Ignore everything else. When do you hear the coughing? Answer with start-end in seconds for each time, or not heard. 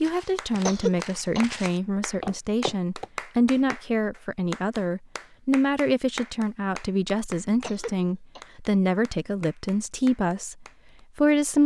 0.7-1.4, 7.6-8.4.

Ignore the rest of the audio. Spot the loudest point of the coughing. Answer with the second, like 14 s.
1 s.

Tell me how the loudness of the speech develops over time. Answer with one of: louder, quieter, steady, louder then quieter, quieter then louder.
steady.